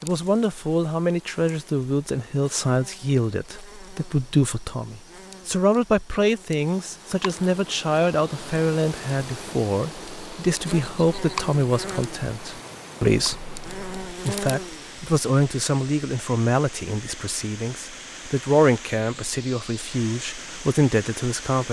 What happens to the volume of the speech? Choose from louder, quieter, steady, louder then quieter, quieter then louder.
steady.